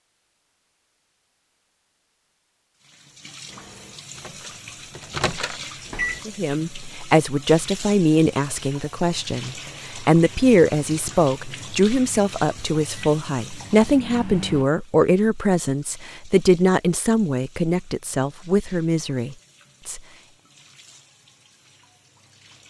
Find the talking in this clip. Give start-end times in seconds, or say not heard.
6.2-20.0.